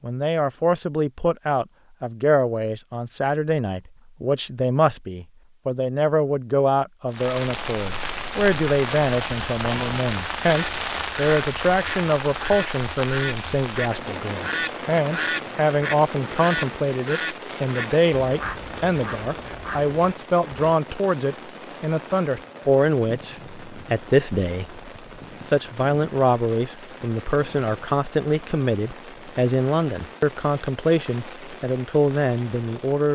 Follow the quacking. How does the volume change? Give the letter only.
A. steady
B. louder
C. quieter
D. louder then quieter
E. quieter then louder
D.